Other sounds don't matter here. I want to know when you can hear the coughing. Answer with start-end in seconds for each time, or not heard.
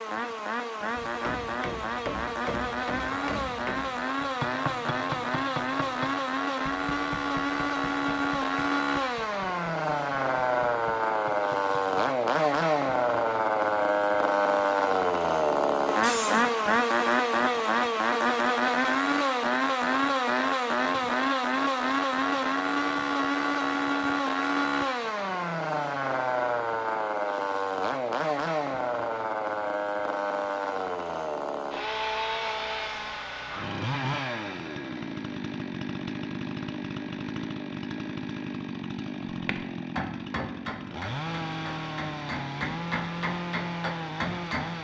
16.0-16.6.